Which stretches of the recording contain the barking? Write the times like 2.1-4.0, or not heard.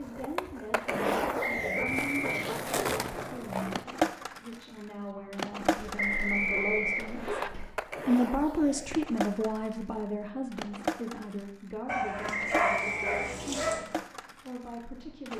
1.2-3.2, 5.8-7.8, 11.8-13.8.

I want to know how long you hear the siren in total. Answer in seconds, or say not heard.
not heard.